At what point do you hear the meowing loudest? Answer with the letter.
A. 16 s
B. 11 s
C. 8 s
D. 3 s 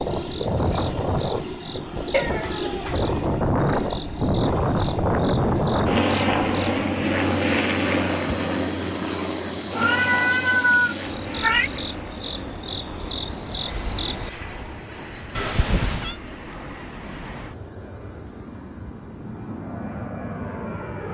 B.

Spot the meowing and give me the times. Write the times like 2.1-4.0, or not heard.
2.1-3.0, 9.8-11.7, 15.3-16.1.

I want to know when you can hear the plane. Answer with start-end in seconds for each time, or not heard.
0.0-21.0.